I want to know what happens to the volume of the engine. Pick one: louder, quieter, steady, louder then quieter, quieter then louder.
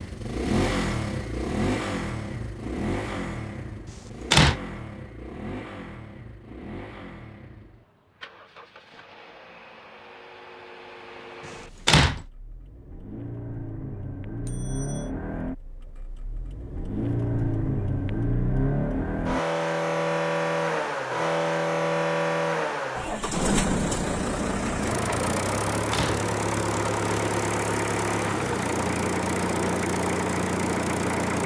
quieter then louder.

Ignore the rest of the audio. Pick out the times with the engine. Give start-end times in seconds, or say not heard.
0.0-31.4.